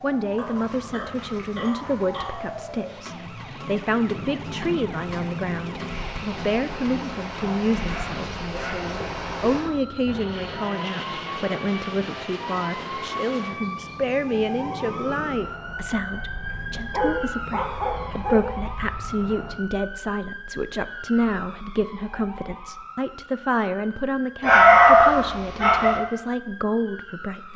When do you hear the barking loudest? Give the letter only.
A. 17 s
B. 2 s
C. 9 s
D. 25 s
D.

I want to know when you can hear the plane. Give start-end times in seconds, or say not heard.
4.0-19.6.